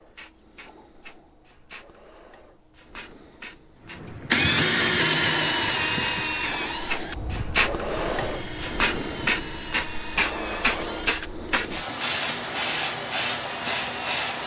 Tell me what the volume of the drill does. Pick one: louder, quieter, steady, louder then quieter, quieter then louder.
quieter.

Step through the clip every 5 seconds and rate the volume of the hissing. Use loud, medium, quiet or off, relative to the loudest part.
quiet, loud, loud.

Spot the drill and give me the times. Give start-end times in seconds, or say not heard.
4.0-14.2.